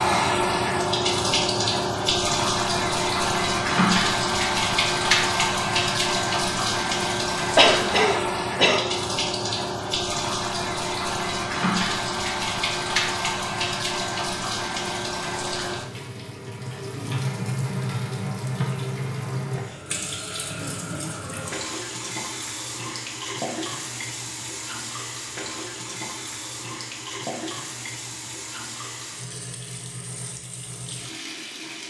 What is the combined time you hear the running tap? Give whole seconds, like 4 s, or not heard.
32 s.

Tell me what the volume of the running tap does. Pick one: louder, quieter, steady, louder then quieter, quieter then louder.
quieter.